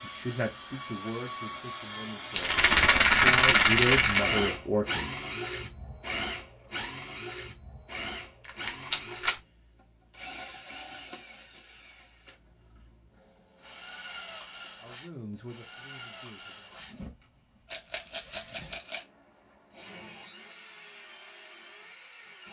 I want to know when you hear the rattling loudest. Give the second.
3 s.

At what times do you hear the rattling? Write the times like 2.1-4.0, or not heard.
2.3-4.2, 8.4-9.3, 17.7-19.1.